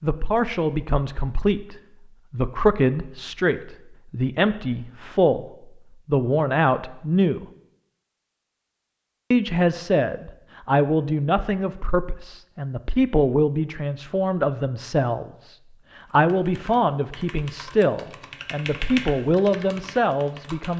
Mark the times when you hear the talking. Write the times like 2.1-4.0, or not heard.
0.0-7.5, 9.3-20.7.